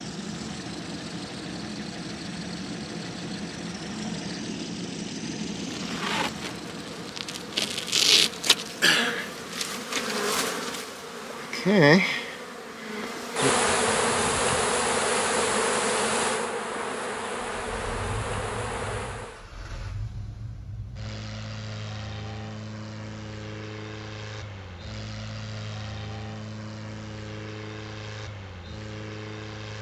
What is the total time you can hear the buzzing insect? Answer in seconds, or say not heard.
14 s.